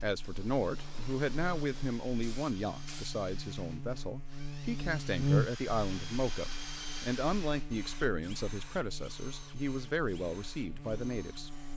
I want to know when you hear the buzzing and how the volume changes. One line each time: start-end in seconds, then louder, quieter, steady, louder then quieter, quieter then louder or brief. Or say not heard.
0.0-11.7 louder then quieter.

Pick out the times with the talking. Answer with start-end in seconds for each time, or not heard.
0.0-11.5.